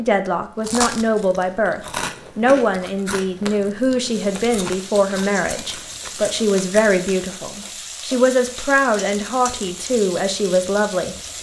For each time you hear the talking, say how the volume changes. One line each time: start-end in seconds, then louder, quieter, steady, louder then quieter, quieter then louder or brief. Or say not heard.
0.0-11.2 steady.